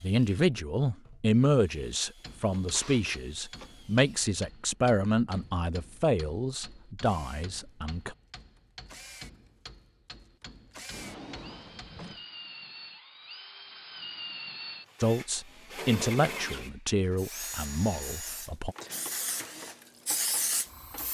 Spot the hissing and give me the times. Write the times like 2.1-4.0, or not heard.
17.1-21.0.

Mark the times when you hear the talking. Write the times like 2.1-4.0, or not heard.
0.0-8.2, 15.0-18.8.